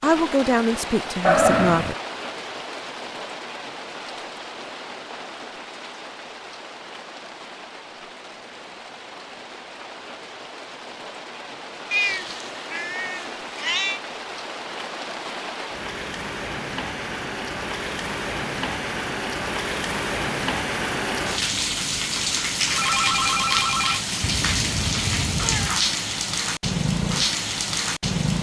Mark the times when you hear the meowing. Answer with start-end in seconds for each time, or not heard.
1.2-1.9, 11.9-14.0, 24.2-25.8.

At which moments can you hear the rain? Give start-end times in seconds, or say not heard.
0.0-28.3.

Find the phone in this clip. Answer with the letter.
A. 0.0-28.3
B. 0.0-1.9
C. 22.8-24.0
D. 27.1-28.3
C.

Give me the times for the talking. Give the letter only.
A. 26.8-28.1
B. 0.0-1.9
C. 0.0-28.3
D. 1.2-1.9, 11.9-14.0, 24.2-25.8
B.